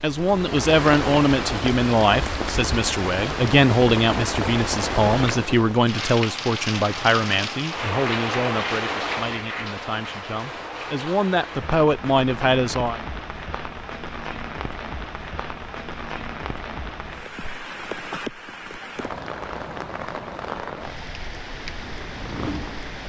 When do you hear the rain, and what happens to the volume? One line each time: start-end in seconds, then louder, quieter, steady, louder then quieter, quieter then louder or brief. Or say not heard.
0.0-23.0 quieter.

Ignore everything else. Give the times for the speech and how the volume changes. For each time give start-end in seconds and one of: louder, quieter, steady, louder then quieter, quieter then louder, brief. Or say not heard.
0.0-13.0 quieter then louder.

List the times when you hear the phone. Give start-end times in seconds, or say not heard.
not heard.